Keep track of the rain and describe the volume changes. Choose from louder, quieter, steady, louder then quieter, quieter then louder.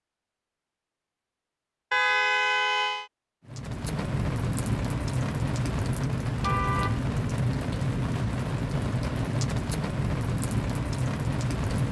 steady.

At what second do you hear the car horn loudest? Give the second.
2 s.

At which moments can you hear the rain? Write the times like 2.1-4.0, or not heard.
3.5-11.8.